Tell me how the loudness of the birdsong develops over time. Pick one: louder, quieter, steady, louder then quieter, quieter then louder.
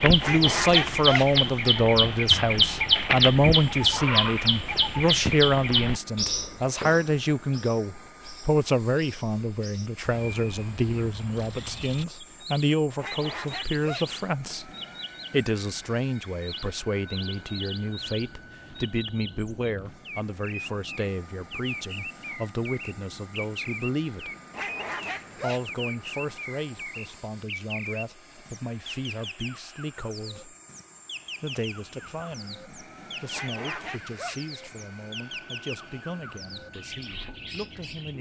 quieter.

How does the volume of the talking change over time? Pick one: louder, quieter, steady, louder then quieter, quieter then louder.
quieter.